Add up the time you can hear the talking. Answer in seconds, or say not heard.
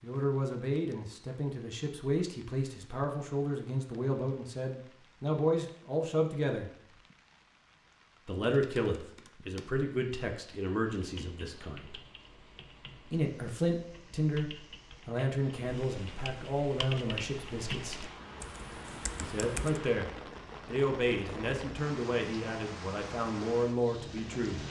21 s.